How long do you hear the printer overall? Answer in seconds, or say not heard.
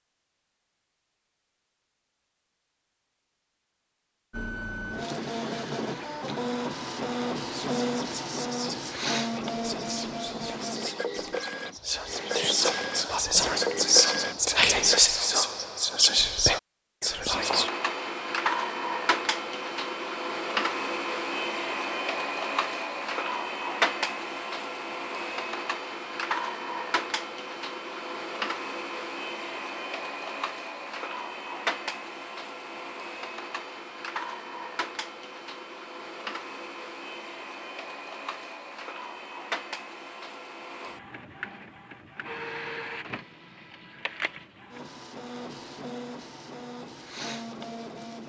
42 s.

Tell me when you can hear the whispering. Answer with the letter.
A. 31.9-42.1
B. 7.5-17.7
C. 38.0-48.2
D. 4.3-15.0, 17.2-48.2
B.